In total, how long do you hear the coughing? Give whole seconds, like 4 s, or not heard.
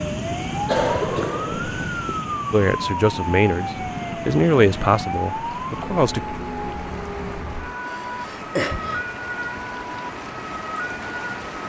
3 s.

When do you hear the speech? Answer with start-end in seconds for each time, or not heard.
2.5-6.2.